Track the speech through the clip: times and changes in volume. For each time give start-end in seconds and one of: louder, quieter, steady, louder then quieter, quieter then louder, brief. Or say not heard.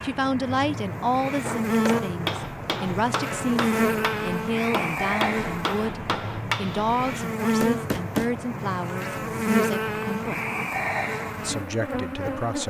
0.0-10.4 steady
11.4-12.6 brief.